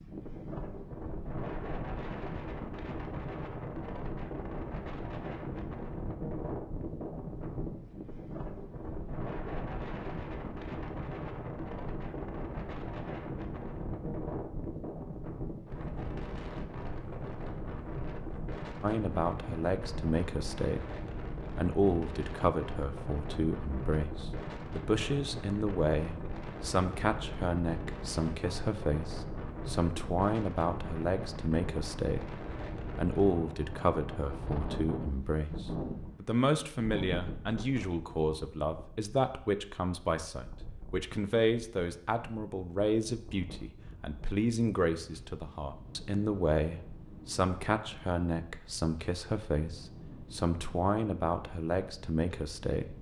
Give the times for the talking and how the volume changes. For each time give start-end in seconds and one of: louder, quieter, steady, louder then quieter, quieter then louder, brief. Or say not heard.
18.8-20.9 brief
21.6-32.2 steady
33.0-52.9 steady.